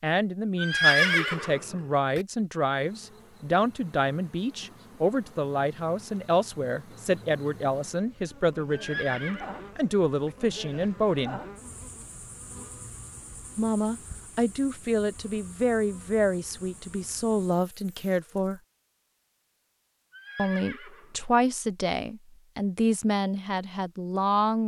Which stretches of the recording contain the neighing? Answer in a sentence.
The neighing can be heard from 0.6 to 2.2 s, from 8.7 to 10.3 s and from 20.1 to 21.1 s.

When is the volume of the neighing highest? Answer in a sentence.
The loudest moment of the neighing is at 1 second.